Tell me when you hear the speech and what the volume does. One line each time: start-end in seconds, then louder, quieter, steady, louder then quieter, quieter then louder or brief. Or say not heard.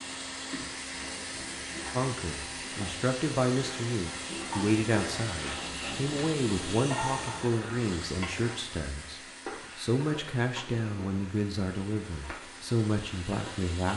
1.9-13.9 steady.